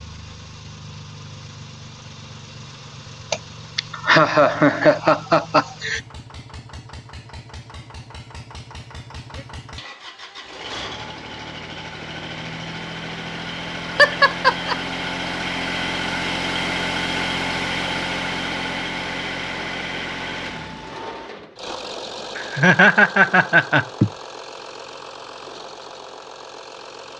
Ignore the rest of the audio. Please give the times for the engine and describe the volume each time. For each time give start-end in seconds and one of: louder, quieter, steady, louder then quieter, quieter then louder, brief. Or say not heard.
0.0-27.1 louder then quieter.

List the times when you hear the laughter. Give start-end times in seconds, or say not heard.
3.3-6.0, 13.9-14.8, 22.4-24.1.